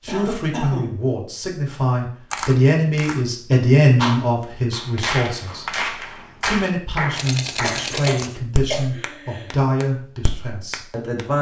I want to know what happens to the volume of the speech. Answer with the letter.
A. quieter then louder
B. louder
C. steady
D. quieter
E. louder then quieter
E.